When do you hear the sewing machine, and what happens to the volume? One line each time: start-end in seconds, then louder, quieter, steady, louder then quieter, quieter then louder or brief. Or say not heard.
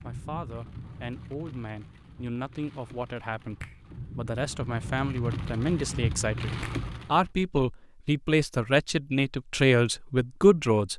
not heard.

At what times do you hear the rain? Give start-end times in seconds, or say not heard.
0.0-7.2.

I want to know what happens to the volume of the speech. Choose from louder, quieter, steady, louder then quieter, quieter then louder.
louder.